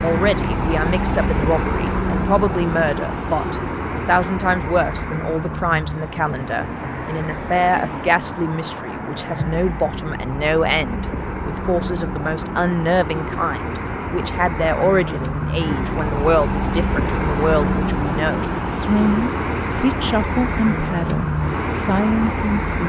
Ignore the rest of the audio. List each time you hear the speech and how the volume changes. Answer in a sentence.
The speech can be heard from 0.0 to 22.8 s, at a steady volume.